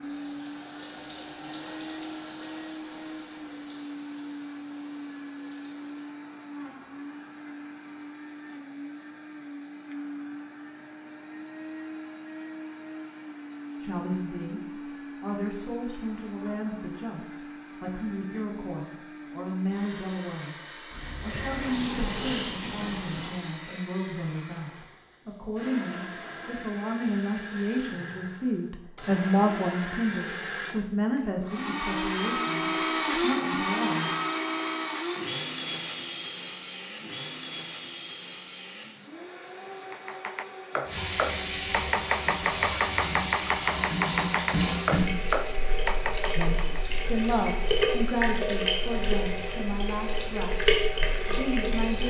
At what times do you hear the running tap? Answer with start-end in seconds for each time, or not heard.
0.0-6.1, 20.9-23.4, 40.9-52.0.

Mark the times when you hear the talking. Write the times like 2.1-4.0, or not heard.
13.8-20.6, 21.2-34.1, 46.4-52.0.